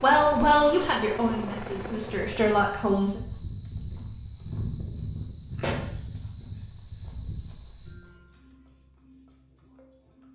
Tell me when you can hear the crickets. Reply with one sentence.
The crickets can be heard from 0.0 to 10.3 s.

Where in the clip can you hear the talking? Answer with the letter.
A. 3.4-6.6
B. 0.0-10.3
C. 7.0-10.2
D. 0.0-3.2
D.